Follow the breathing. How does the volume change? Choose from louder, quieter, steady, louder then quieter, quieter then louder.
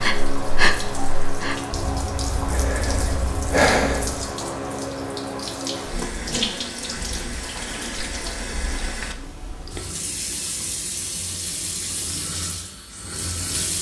quieter then louder.